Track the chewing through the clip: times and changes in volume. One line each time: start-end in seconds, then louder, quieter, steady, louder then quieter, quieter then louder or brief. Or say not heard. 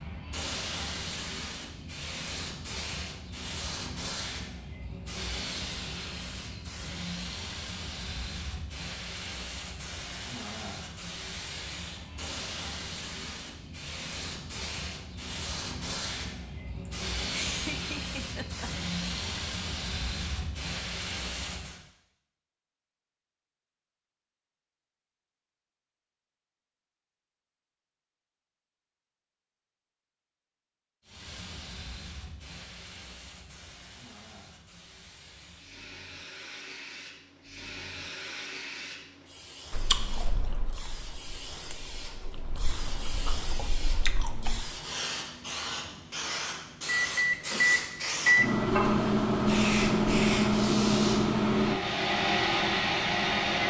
39.7-44.6 quieter then louder.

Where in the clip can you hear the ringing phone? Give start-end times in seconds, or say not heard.
not heard.